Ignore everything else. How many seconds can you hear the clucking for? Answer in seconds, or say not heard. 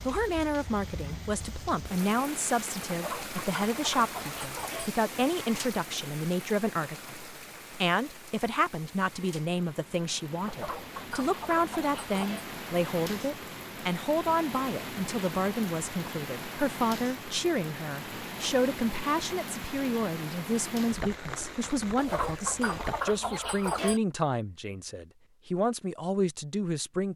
6 s.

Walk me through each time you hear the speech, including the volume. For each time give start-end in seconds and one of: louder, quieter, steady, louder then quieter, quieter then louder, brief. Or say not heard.
0.1-27.1 steady.